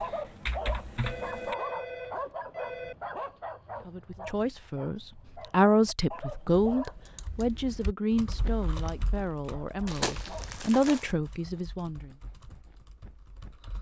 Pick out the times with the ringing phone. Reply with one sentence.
The ringing phone can be heard from 1.0 to 3.0 s.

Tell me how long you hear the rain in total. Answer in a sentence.
The rain can't be heard in this clip.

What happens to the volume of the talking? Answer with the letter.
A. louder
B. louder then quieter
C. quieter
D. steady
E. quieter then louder
E.